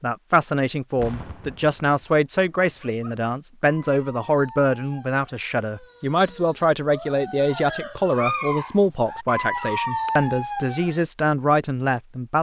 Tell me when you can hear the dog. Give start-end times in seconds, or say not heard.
2.4-11.1.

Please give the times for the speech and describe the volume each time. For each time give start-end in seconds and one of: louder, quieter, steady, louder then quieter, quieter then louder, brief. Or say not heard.
0.0-12.3 steady.